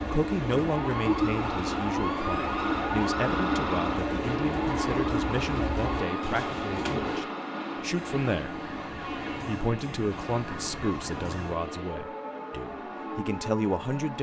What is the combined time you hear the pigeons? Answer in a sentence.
The pigeons can be heard for 7 seconds in total.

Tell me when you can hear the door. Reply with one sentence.
You can't hear the door here.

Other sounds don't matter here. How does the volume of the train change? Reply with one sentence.
The loudness of the train goes down.